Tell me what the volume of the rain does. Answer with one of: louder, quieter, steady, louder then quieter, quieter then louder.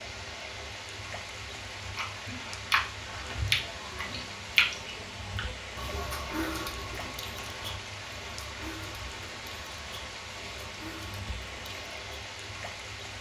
steady.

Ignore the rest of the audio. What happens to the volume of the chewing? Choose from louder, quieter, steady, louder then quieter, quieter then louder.
quieter.